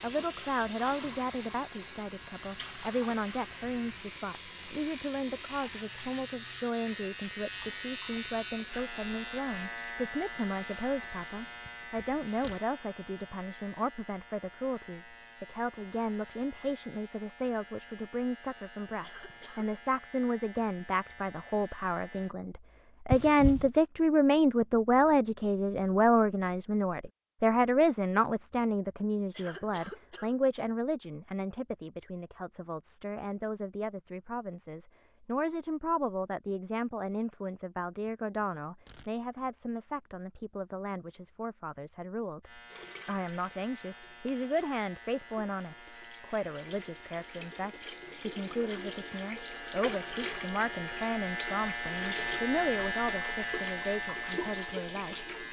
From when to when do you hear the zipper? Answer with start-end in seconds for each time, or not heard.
11.7-12.6, 23.1-23.7, 38.4-39.1.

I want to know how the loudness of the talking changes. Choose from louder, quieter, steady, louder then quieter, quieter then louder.
louder then quieter.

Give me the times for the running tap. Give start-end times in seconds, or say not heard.
0.0-12.7, 42.6-55.4.